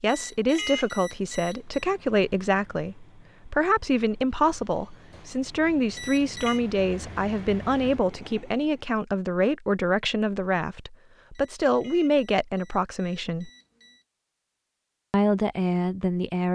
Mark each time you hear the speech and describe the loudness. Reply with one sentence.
The speech can be heard from 0.0 to 13.5 s, at a steady volume; and briefly from 15.1 to 16.4 s.